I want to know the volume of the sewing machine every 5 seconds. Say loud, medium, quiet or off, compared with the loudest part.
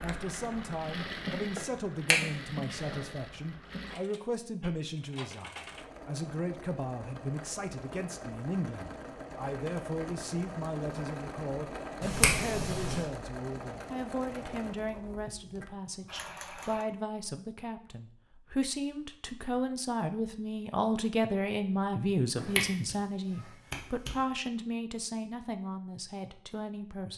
loud, loud, loud, medium, off, off.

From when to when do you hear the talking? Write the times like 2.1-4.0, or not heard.
0.0-27.1.